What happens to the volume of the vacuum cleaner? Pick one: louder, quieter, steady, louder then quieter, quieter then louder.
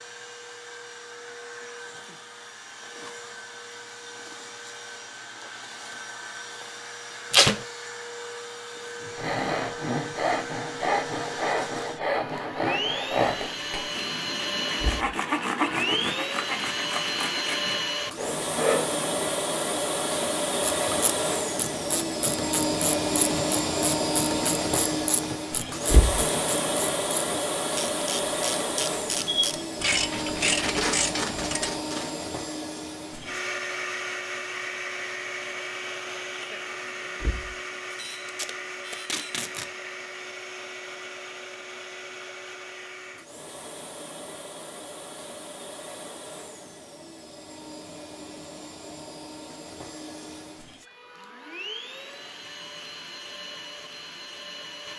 louder then quieter.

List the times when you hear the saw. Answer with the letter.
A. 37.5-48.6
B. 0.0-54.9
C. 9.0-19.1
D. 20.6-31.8
C.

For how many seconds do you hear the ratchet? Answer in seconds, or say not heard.
11 s.